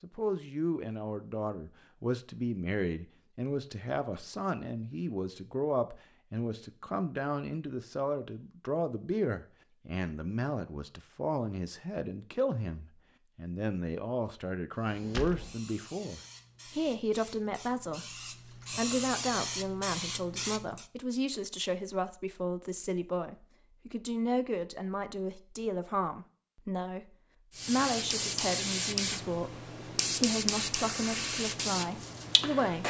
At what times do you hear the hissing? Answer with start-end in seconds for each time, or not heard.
14.8-20.9, 27.5-32.8.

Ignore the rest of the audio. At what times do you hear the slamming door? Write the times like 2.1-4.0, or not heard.
15.1-15.6.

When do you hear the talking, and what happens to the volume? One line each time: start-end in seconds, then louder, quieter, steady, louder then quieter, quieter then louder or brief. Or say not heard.
0.0-32.8 steady.